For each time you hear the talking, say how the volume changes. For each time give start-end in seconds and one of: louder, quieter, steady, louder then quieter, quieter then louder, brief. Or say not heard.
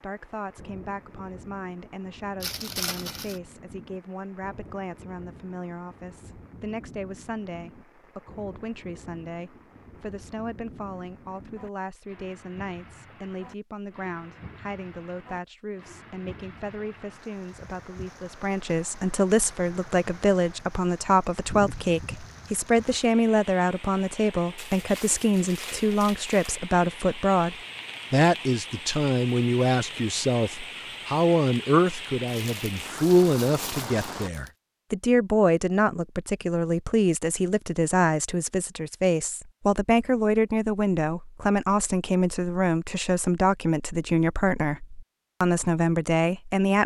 0.0-46.8 louder.